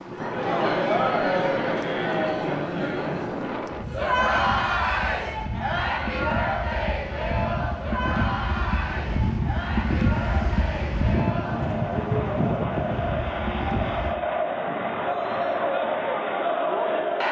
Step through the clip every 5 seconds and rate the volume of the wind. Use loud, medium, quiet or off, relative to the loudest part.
medium, loud, loud, off.